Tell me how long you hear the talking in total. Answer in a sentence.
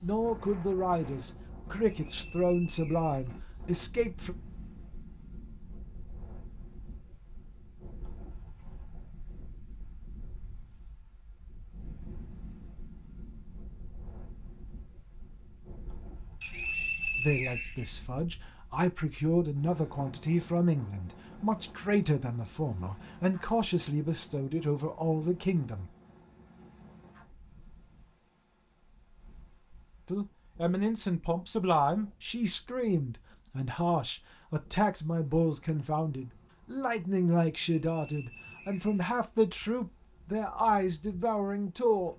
The talking can be heard for 25 seconds in total.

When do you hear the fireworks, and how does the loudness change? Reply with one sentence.
You can't hear the fireworks here.